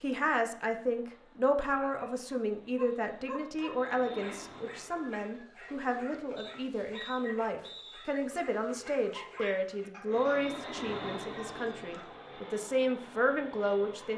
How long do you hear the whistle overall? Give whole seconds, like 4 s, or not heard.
2 s.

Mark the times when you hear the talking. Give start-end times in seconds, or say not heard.
0.0-14.1.